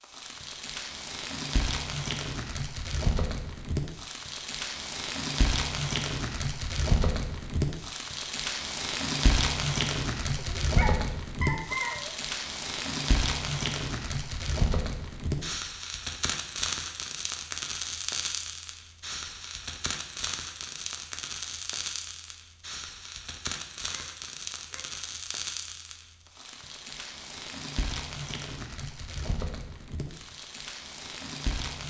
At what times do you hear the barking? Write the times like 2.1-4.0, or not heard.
10.3-12.2, 23.9-25.0.